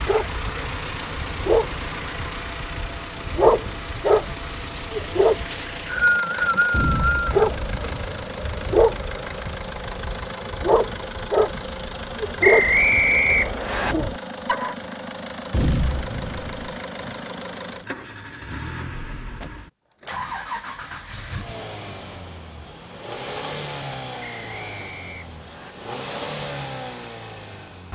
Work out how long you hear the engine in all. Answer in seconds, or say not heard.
28 s.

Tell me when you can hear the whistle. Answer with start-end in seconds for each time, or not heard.
5.5-7.2, 12.4-13.9, 24.2-25.8.